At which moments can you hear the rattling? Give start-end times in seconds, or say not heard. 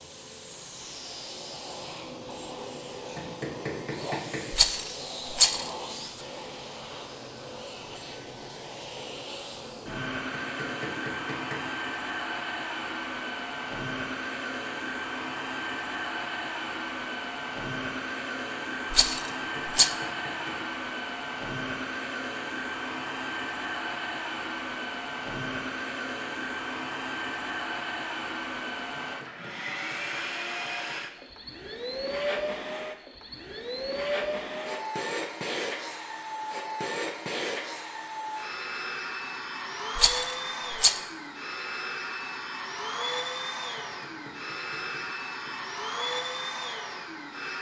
4.5-5.7, 18.9-19.9, 40.0-41.0.